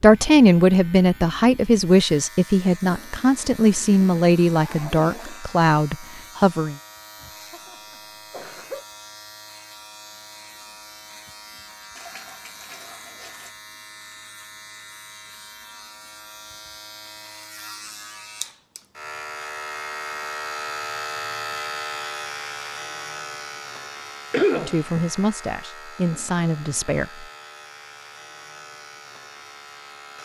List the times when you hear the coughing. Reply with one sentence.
The coughing can be heard from 7.2 to 8.8 s and from 24.3 to 25.1 s.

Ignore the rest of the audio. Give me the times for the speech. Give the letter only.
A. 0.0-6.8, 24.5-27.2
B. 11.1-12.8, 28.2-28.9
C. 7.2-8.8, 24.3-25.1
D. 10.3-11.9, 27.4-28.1
A.